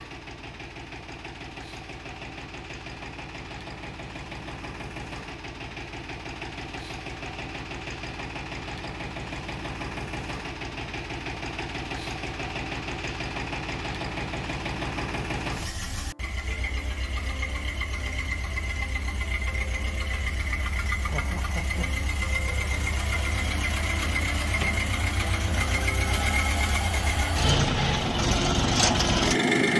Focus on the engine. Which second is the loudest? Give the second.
29 s.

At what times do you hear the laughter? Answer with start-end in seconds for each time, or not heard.
21.1-21.9.